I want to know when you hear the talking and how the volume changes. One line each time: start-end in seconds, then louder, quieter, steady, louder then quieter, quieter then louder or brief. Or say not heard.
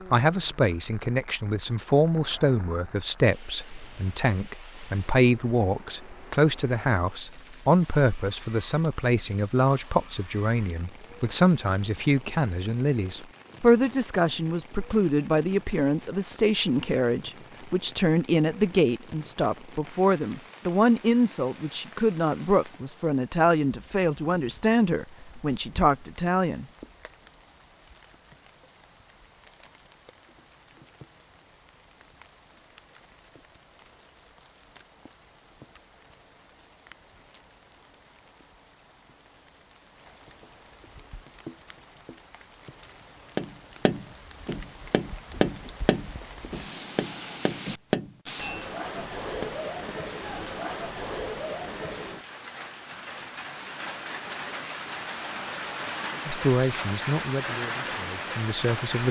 0.1-26.6 steady
56.2-59.0 brief.